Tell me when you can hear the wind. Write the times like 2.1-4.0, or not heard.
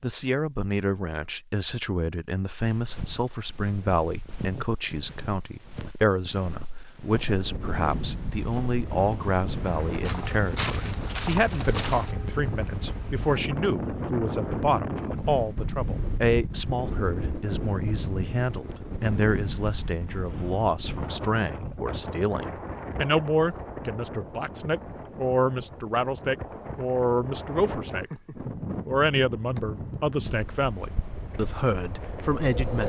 7.2-32.8.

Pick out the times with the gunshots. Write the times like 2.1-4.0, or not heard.
not heard.